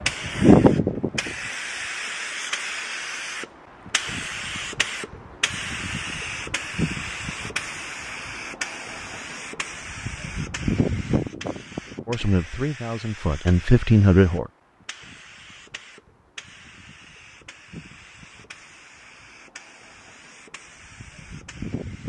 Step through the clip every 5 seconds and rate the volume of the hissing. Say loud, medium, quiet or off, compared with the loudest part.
loud, medium, medium, quiet, quiet.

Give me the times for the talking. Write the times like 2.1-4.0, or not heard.
12.1-14.5.